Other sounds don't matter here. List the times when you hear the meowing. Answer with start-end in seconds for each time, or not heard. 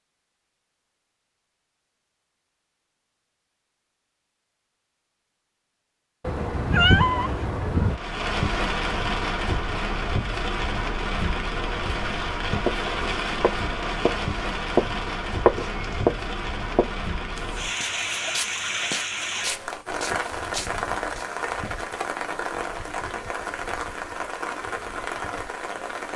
6.2-8.0, 15.3-16.1.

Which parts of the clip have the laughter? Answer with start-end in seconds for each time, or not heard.
not heard.